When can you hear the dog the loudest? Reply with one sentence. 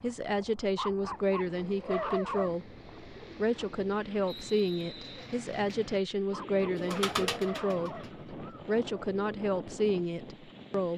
The volume of the dog peaks at 2 seconds.